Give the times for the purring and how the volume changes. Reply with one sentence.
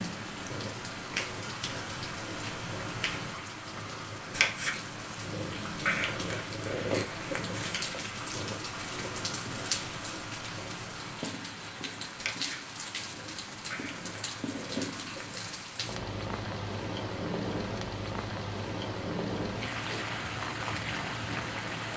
The purring can be heard from 0.0 to 21.9 s, getting quieter.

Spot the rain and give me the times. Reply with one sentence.
You can hear the rain from 0.0 to 21.9 s.